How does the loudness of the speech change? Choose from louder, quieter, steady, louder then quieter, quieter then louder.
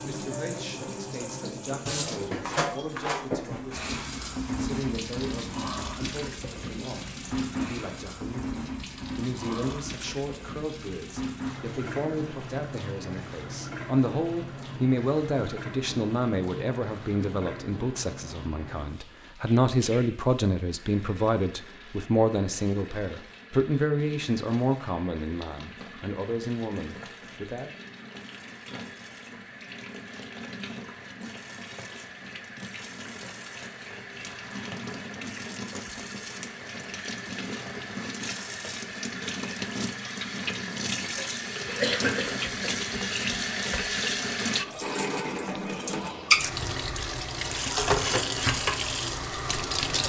louder.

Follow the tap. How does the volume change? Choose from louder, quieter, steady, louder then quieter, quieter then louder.
quieter then louder.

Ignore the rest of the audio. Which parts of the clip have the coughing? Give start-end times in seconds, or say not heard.
41.1-42.8.